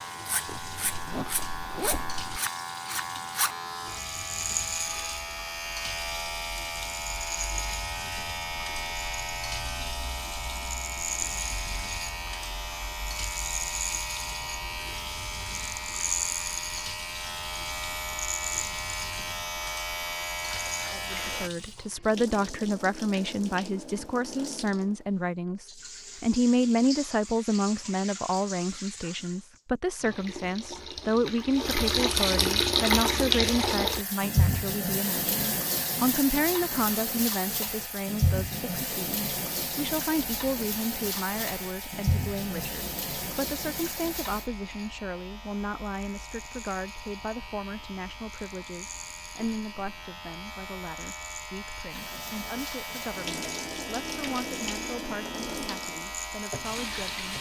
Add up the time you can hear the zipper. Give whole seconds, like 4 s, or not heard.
4 s.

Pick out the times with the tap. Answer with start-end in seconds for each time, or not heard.
0.0-44.5, 51.9-57.3.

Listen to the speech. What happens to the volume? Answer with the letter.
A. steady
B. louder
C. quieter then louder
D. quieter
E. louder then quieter
D.